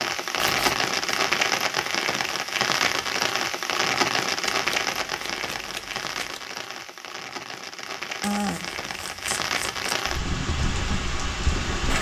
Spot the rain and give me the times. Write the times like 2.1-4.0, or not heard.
0.0-11.9.